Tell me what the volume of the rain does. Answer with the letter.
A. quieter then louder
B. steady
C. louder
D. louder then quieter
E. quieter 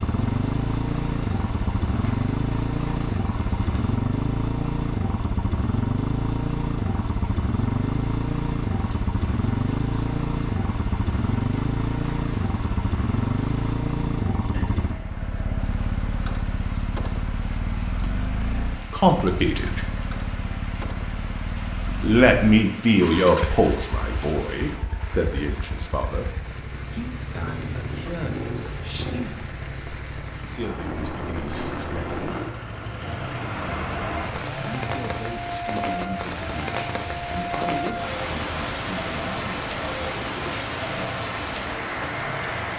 C.